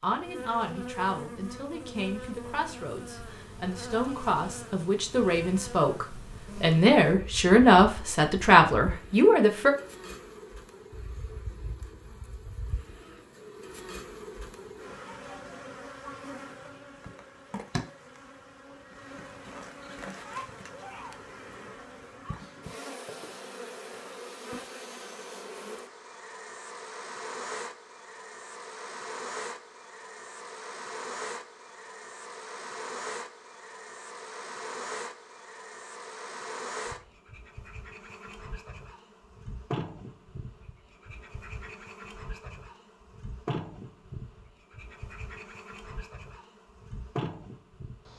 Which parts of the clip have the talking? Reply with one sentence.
You can hear the talking from 0.0 to 9.7 s.